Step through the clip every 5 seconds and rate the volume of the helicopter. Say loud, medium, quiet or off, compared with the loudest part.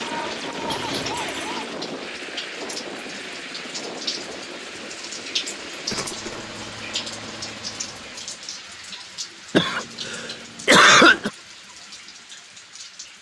loud, medium, off.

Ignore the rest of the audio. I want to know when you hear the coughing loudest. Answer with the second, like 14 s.
11 s.